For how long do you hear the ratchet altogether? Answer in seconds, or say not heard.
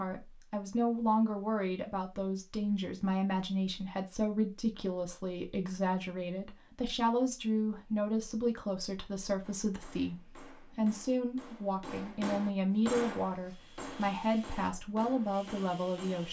not heard.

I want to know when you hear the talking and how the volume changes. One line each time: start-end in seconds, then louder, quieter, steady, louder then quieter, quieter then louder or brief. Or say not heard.
0.0-16.2 steady.